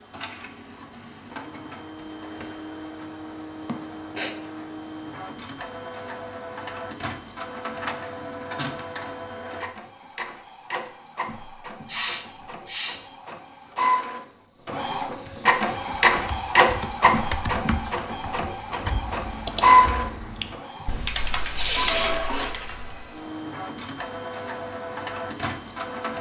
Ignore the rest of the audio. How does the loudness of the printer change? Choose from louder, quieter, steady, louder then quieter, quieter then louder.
louder then quieter.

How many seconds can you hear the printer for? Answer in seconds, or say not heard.
26 s.